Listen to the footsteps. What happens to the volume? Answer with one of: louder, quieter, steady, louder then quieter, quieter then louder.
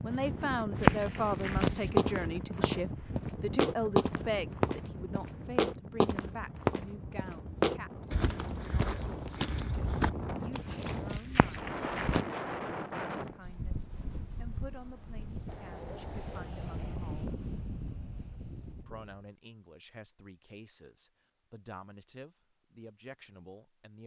quieter.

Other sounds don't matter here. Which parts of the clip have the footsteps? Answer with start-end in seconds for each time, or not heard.
0.8-12.2.